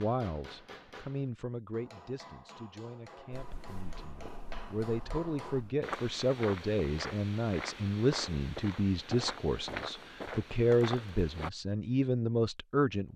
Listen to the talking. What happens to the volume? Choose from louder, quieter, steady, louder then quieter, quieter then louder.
louder.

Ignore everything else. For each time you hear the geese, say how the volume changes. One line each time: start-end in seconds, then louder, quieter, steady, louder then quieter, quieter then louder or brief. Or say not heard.
not heard.